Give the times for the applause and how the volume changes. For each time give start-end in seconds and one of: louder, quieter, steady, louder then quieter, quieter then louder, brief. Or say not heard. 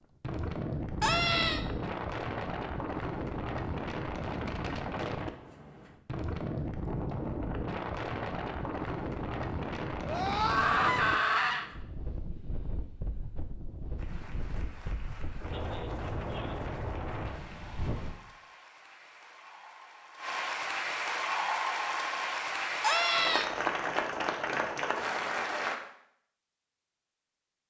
13.9-25.8 louder.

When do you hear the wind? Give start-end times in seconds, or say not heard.
0.2-18.1.